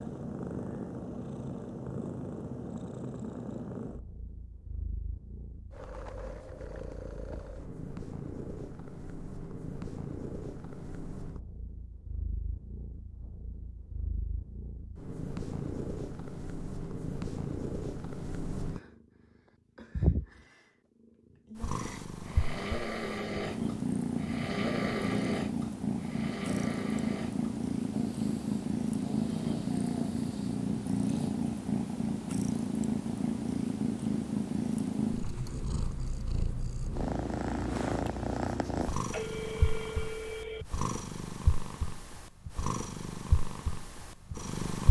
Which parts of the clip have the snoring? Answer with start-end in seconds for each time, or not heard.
21.6-31.4.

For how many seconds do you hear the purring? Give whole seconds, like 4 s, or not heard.
44 s.